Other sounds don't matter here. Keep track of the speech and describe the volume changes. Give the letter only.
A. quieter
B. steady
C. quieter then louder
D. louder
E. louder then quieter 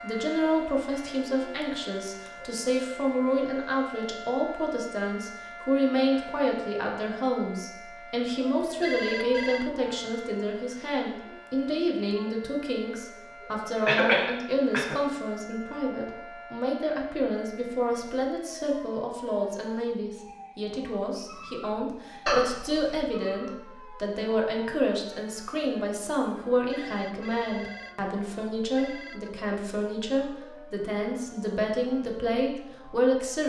B.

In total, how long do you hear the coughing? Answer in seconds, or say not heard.
2 s.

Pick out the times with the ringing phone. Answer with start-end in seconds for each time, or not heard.
8.8-9.7, 26.7-29.3.